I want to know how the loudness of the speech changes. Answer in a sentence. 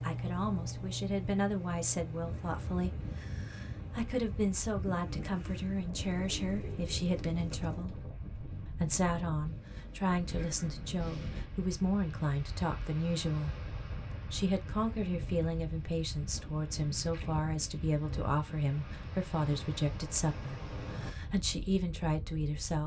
The volume of the speech stays about the same.